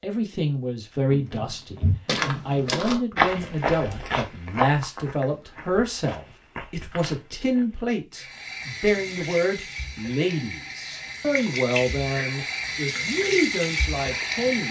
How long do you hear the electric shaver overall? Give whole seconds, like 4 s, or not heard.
not heard.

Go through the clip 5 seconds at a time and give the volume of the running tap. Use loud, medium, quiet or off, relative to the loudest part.
off, medium, loud.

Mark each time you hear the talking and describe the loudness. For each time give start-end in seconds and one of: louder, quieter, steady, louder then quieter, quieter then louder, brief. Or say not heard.
0.0-14.6 steady.